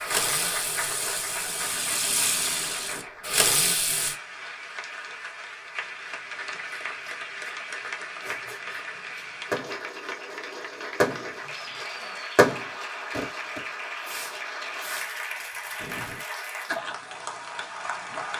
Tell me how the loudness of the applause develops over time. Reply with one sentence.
The loudness of the applause stays about the same.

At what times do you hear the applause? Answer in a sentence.
The applause can be heard from 0.0 to 18.3 s.